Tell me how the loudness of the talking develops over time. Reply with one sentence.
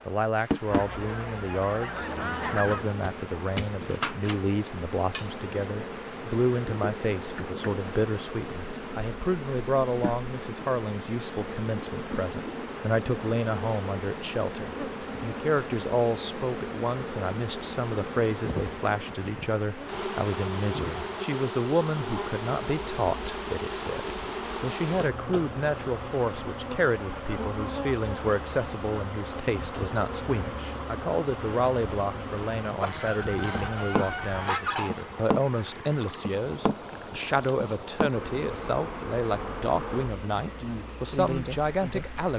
The volume of the talking stays about the same.